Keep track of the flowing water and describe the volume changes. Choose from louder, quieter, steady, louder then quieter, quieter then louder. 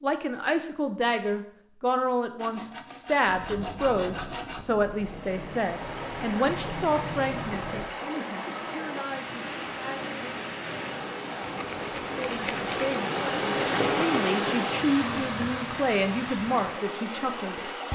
louder then quieter.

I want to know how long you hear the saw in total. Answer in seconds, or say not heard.
4 s.